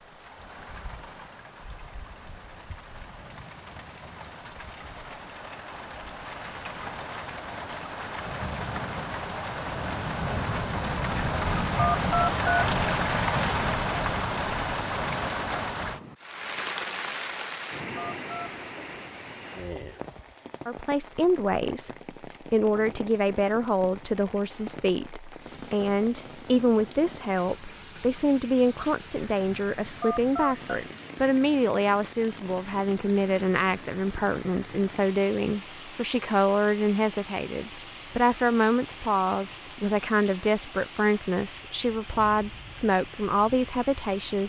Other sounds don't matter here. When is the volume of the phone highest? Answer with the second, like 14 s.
12 s.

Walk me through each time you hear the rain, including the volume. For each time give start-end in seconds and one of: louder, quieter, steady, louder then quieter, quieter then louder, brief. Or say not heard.
0.0-44.4 louder then quieter.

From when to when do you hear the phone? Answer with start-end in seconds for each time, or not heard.
11.8-12.7, 17.9-18.5, 30.0-30.6.